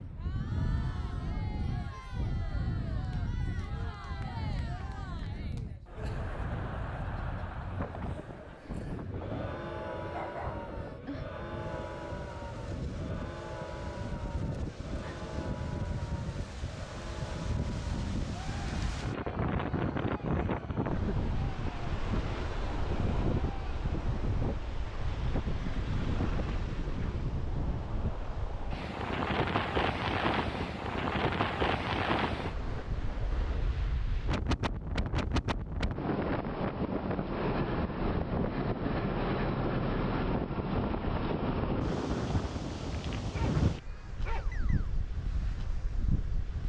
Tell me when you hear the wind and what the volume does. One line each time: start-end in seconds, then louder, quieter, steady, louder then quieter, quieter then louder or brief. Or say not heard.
0.0-46.6 louder.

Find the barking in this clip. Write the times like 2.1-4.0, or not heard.
9.3-11.2, 43.3-45.0.